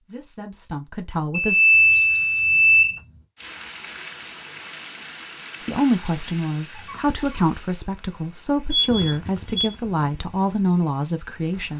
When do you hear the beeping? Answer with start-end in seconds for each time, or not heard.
1.3-3.0, 8.7-9.8.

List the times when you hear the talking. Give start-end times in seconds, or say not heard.
0.1-1.6, 5.7-11.7.